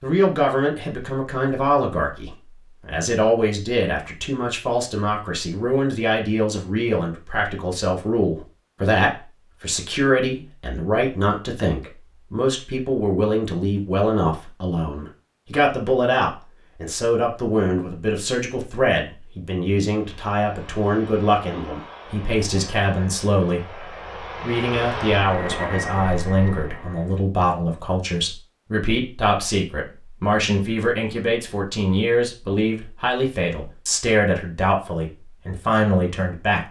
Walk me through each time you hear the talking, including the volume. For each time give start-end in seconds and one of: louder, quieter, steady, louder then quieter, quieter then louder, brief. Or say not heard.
0.0-36.6 steady.